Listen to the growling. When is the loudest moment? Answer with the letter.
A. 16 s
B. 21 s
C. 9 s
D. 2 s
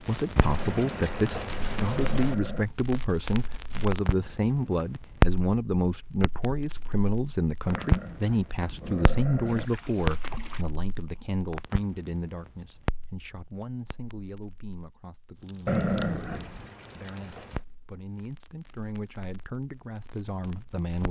A.